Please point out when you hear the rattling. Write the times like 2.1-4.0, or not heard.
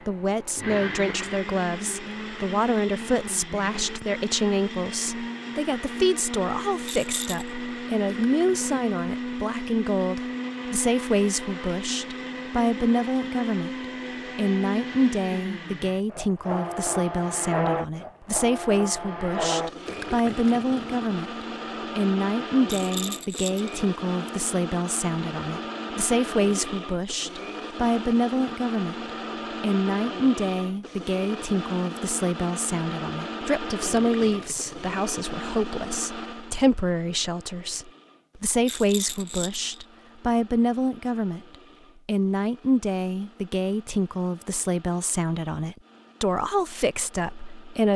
6.8-7.5, 22.6-23.8, 38.6-39.6.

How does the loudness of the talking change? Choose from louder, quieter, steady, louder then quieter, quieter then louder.
steady.